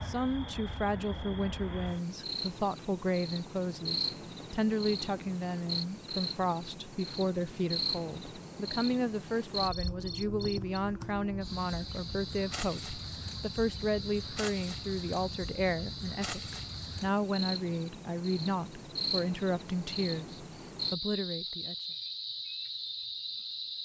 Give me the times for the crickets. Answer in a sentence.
The crickets can be heard from 0.0 to 23.8 s.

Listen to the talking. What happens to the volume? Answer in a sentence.
The volume of the talking stays about the same.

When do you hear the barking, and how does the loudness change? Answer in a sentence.
You can't hear the barking here.